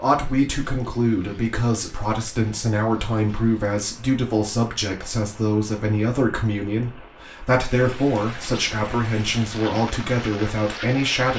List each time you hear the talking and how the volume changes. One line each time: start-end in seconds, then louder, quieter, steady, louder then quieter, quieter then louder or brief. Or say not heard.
0.0-11.3 steady.